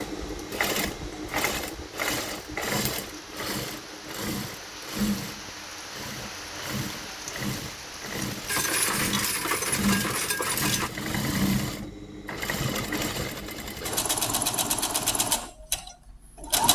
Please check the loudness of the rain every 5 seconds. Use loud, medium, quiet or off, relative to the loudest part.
medium, loud, off, off.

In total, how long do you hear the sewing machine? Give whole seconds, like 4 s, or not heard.
17 s.